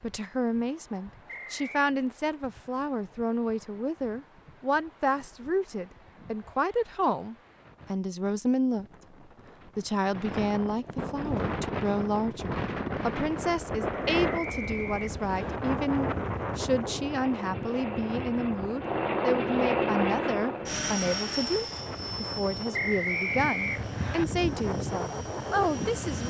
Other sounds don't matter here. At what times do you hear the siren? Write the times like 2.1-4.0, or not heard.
not heard.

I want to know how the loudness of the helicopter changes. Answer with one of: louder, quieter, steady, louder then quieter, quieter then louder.
louder then quieter.